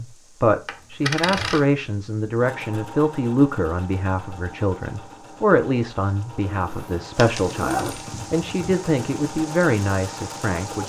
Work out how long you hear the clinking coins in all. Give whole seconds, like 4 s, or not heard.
2 s.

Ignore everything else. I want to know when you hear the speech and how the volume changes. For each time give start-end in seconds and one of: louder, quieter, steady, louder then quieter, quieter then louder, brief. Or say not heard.
0.0-10.8 steady.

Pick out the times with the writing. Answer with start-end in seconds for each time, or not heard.
not heard.